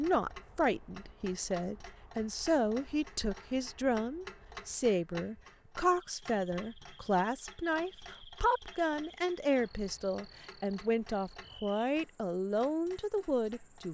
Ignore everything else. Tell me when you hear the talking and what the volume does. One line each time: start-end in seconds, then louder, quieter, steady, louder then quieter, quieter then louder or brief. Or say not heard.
0.0-13.8 steady.